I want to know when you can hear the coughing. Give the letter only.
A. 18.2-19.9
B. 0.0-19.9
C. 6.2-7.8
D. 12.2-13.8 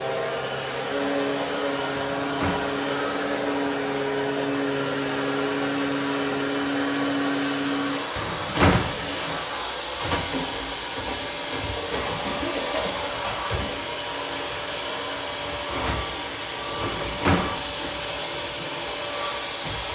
D.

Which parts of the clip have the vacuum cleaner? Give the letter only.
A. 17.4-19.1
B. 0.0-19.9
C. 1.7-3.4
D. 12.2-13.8
B.